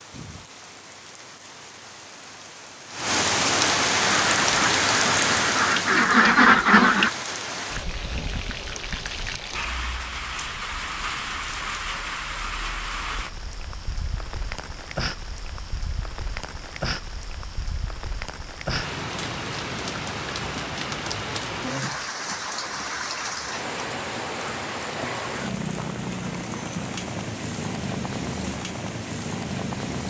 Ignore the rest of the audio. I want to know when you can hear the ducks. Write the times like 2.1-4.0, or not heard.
4.0-7.1.